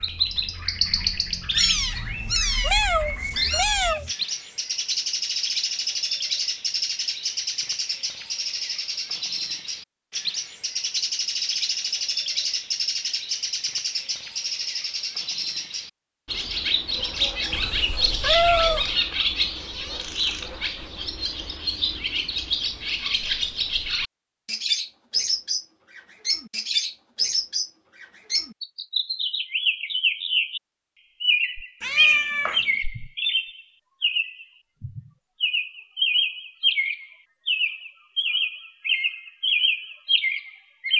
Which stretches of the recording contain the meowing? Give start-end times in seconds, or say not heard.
1.6-4.1, 17.5-19.0, 31.8-32.6.